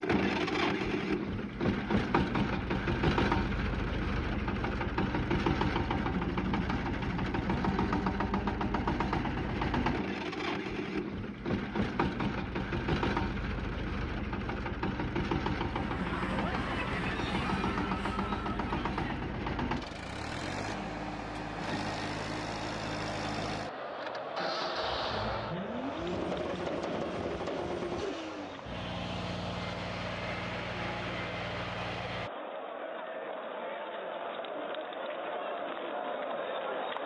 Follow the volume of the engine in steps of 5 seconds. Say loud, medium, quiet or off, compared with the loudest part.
loud, loud, loud, loud, medium, medium, medium, off.